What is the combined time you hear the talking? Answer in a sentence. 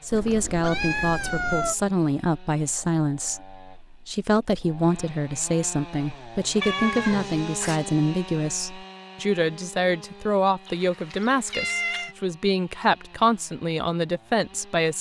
The talking can be heard for 15 seconds in total.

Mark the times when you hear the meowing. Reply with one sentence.
You can hear the meowing from 0.1 to 1.8 s, from 6.6 to 7.8 s and from 10.7 to 12.2 s.